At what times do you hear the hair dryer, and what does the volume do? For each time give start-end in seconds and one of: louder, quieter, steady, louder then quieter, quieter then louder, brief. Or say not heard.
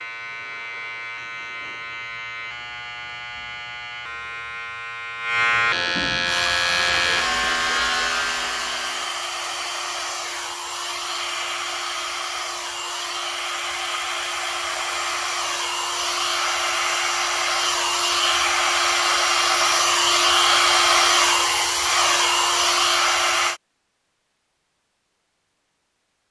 6.2-23.6 louder.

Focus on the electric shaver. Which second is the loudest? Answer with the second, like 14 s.
6 s.